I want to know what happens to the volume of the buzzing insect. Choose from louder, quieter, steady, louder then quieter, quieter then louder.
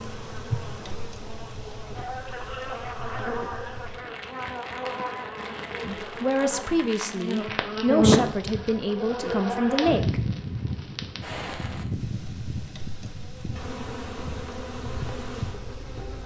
louder then quieter.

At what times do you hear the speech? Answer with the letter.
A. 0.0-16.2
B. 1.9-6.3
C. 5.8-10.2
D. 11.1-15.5
C.